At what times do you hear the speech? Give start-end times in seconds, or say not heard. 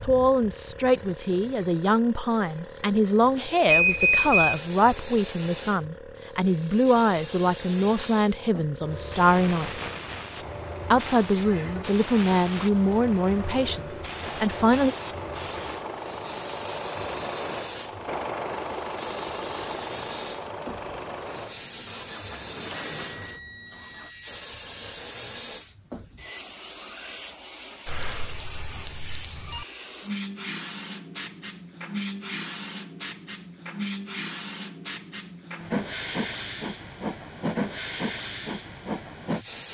0.0-9.8, 10.9-14.9.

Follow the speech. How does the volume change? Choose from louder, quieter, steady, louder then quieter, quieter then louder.
steady.